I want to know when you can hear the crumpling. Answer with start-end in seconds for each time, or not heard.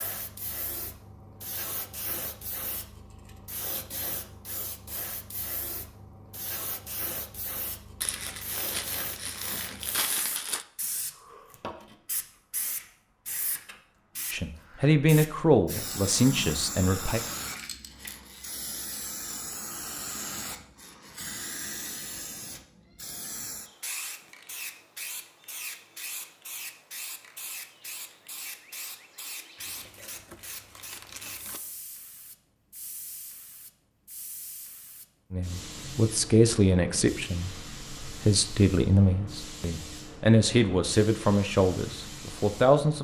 8.0-10.7, 29.6-31.6.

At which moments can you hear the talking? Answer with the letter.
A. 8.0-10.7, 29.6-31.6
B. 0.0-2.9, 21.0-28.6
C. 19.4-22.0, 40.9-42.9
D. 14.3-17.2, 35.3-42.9
D.